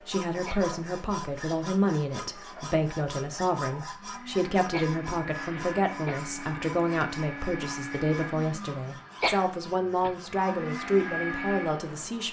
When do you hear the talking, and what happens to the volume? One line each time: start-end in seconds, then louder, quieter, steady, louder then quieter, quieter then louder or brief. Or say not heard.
0.1-12.2 steady.